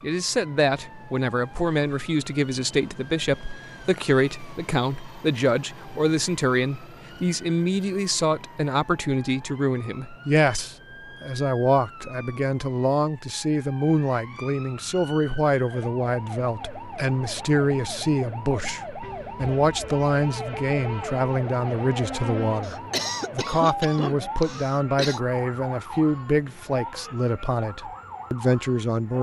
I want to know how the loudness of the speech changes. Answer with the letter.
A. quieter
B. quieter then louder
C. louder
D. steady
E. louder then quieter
D.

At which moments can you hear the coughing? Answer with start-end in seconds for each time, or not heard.
22.6-25.2.